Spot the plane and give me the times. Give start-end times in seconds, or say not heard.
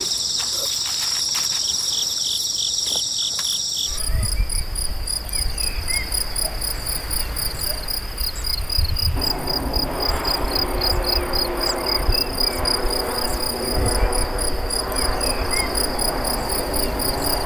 9.2-17.4.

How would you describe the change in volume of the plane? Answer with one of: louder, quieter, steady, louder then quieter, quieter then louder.
steady.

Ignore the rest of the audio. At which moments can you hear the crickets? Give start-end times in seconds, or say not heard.
0.0-17.4.